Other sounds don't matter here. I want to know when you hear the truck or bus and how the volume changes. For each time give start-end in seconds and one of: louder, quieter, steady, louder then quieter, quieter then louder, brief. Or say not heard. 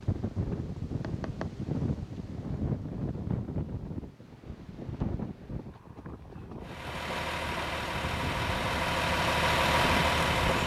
6.6-10.6 louder.